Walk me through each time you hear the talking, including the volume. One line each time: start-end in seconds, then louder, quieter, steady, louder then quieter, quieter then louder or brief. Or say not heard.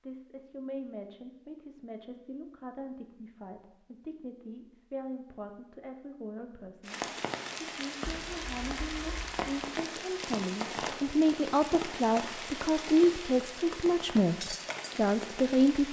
0.0-15.8 louder.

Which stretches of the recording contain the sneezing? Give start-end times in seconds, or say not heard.
not heard.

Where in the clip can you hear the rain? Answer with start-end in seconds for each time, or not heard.
6.8-15.8.